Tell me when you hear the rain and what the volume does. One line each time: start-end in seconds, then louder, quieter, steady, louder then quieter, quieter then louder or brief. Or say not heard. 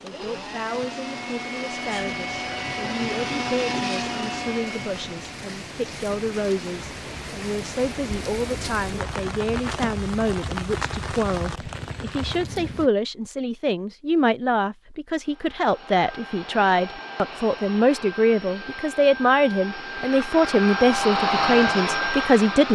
0.0-12.9 louder.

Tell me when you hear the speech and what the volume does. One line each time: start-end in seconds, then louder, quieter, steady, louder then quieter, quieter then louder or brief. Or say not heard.
0.0-22.7 louder.